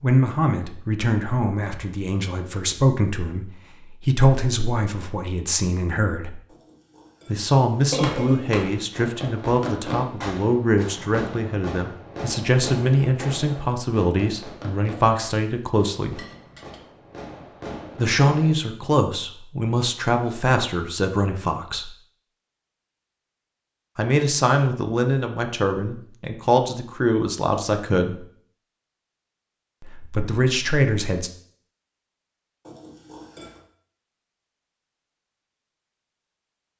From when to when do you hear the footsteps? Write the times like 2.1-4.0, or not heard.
not heard.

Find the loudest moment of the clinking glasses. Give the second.
8 s.